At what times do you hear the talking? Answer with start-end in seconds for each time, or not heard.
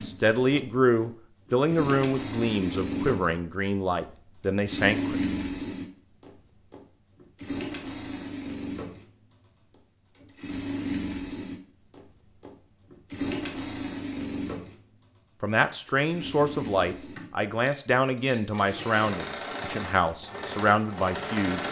0.1-5.2, 15.4-21.6.